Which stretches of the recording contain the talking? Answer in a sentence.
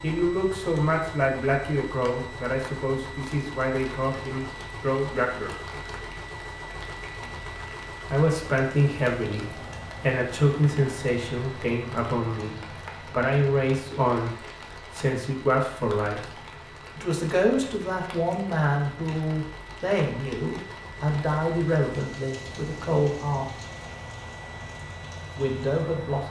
The talking can be heard from 0.0 to 5.5 s, from 8.1 to 23.5 s and from 25.4 to 26.2 s.